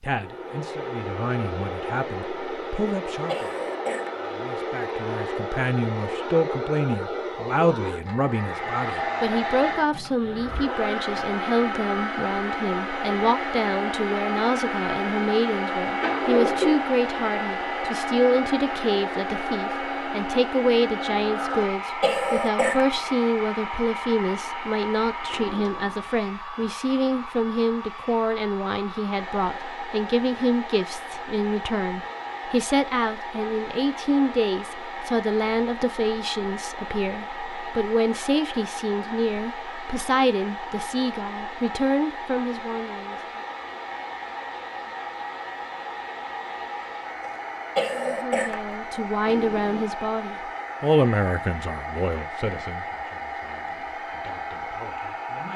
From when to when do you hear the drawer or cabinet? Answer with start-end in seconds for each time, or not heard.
16.0-16.8, 25.2-26.7, 49.2-50.0.